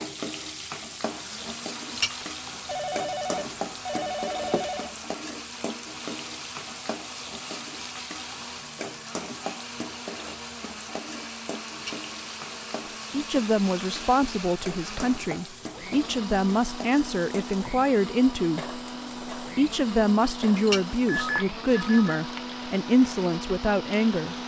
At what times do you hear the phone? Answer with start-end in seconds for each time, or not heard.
2.6-4.9, 21.1-22.2.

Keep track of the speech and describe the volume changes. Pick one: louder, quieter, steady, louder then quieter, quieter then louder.
steady.